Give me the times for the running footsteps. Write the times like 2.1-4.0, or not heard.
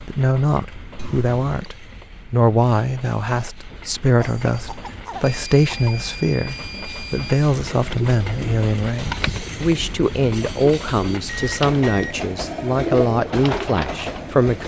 not heard.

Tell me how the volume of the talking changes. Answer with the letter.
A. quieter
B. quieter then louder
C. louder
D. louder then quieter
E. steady
E.